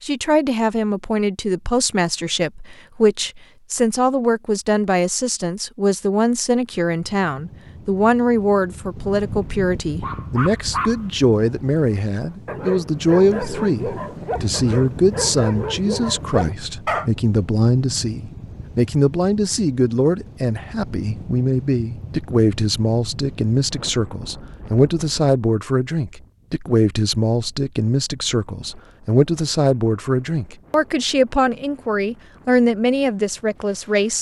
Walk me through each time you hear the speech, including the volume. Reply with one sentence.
You can hear the speech from 0.0 to 34.1 s, at a steady volume.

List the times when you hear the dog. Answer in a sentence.
The dog can be heard from 9.2 to 17.1 s.